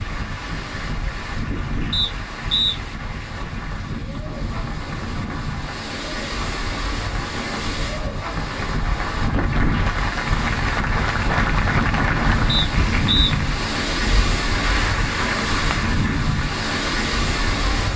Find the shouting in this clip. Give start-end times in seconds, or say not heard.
not heard.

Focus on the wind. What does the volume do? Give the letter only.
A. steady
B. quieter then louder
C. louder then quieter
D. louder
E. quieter
D.